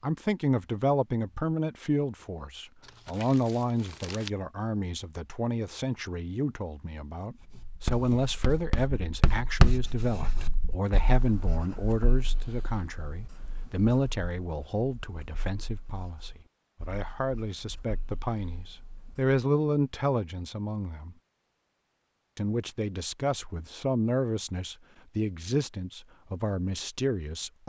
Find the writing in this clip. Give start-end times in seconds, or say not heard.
7.4-19.4.